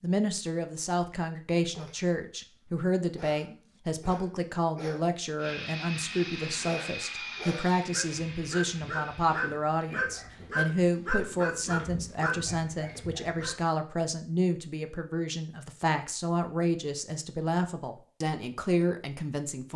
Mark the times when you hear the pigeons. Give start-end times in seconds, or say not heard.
not heard.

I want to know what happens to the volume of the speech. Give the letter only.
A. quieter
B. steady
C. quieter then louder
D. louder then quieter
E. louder
B.